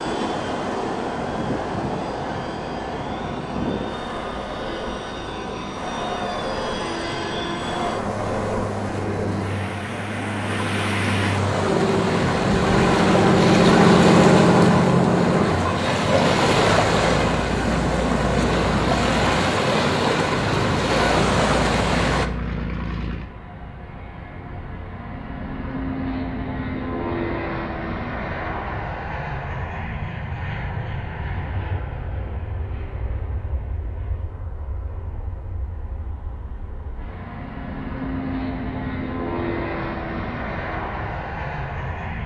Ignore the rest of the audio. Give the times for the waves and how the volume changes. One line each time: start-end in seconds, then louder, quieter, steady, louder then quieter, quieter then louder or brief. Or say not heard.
0.0-22.3 louder.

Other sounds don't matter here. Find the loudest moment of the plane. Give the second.
14 s.